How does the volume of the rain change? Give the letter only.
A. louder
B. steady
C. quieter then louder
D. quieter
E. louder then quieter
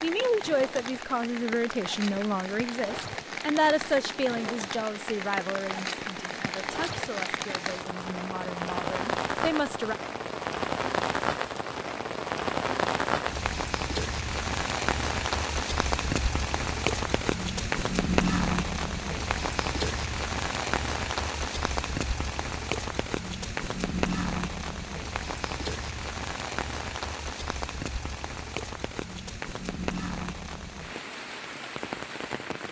E.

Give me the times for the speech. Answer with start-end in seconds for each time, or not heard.
0.0-9.9.